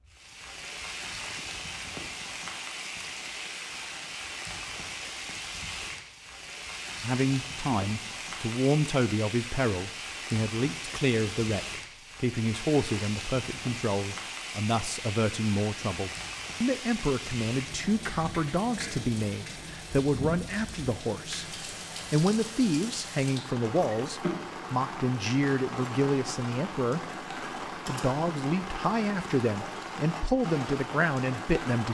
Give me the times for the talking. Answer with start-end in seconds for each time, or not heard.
7.0-27.2, 27.9-31.8.